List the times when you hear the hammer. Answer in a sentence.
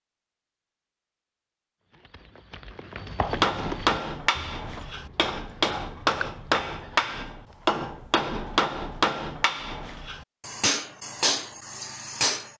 The hammer can be heard from 3.2 to 12.5 s.